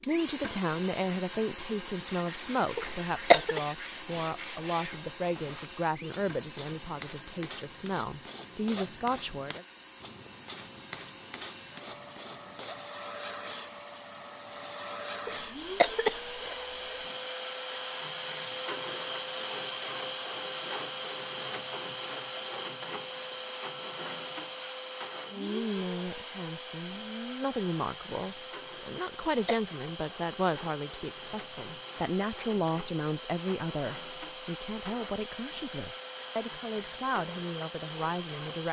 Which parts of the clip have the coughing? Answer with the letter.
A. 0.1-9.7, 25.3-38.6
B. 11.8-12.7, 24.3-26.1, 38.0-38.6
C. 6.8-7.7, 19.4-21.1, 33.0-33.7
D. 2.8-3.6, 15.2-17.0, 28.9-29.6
D.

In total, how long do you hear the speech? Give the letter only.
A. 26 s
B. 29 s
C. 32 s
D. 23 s
D.